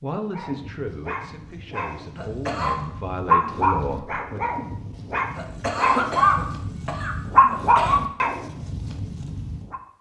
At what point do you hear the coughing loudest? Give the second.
6 s.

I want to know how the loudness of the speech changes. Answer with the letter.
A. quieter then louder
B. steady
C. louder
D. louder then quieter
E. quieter
A.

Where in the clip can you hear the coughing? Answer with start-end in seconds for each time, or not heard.
2.1-2.8, 5.3-8.0.